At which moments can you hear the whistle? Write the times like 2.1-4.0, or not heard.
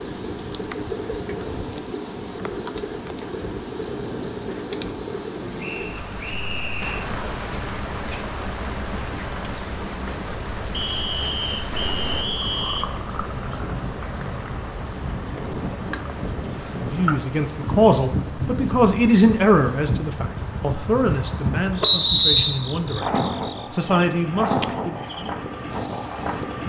5.6-7.0, 10.7-12.8, 21.8-22.6.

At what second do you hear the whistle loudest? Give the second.
22 s.